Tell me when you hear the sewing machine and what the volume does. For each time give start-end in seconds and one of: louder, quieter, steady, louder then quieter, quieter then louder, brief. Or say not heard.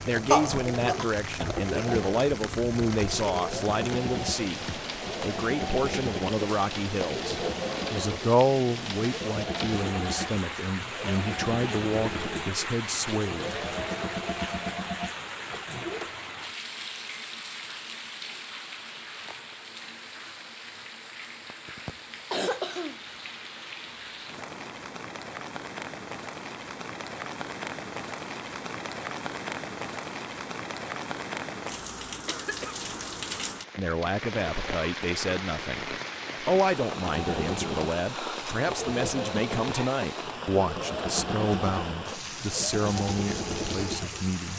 0.0-16.4 steady
37.0-44.2 steady.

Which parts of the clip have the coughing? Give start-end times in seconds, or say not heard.
0.3-1.6, 21.5-23.0, 32.2-32.8.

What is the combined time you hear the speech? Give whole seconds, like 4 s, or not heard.
24 s.